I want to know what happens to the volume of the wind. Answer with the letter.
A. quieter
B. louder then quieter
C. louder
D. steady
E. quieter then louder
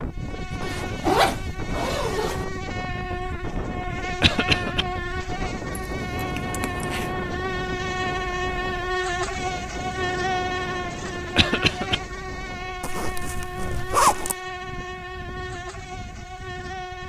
A.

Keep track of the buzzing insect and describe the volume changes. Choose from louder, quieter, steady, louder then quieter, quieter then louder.
louder then quieter.